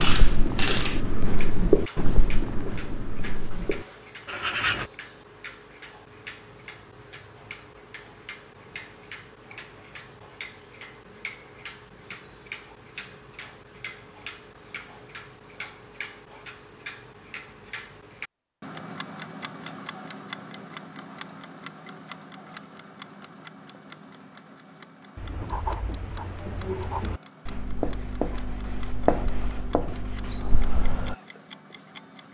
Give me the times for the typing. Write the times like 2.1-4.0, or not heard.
not heard.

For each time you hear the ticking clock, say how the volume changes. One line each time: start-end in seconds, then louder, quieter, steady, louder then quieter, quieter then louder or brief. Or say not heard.
0.0-32.2 quieter.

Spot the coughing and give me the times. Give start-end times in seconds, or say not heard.
not heard.